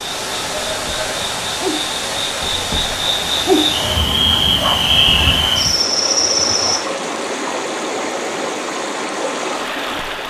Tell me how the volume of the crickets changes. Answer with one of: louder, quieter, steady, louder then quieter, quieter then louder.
louder.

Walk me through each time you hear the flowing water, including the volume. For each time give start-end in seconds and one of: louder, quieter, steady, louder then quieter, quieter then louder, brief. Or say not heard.
0.0-10.2 steady.